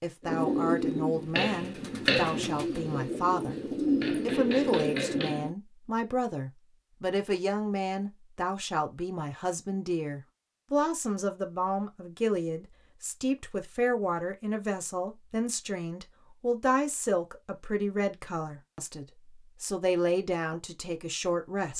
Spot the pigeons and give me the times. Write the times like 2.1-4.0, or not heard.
0.2-5.5.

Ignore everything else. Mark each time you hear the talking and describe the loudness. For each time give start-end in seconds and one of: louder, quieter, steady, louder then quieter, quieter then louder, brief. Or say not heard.
0.0-21.7 steady.